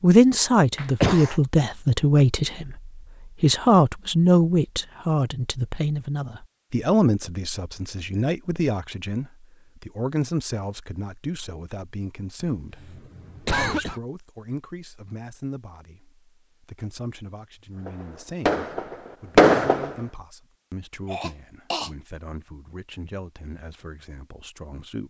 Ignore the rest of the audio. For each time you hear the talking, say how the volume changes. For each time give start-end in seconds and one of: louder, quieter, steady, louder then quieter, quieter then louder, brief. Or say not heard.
0.0-25.0 quieter.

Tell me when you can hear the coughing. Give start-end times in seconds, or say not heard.
0.8-1.4, 12.6-14.0, 21.1-21.9.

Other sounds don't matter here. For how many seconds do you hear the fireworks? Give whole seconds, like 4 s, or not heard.
2 s.